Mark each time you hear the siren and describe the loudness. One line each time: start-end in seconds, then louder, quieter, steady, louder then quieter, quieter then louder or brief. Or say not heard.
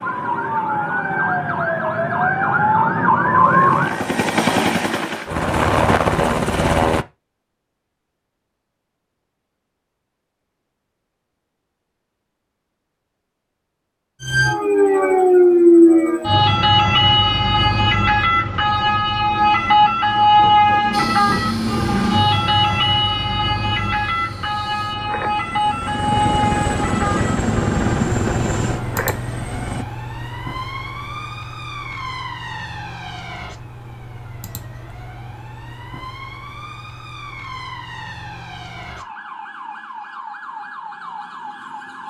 0.0-4.0 louder
14.2-42.0 quieter.